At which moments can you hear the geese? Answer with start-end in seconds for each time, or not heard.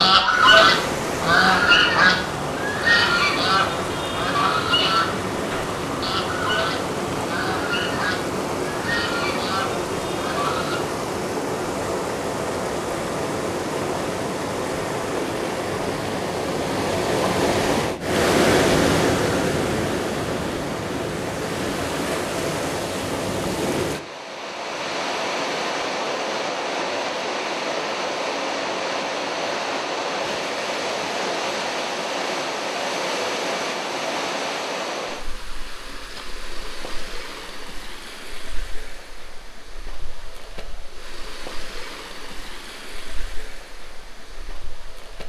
0.0-10.8.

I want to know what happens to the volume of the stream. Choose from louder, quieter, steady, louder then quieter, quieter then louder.
quieter.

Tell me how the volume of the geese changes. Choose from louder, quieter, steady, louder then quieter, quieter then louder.
quieter.